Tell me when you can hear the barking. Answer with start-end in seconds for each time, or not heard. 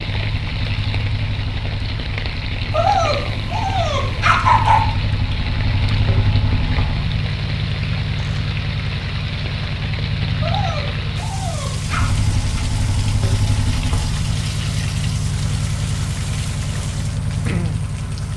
2.7-4.8, 10.4-12.1.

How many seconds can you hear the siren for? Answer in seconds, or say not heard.
not heard.